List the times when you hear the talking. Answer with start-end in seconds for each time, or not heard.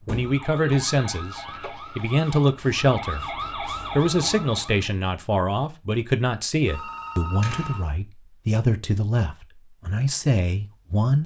0.1-11.2.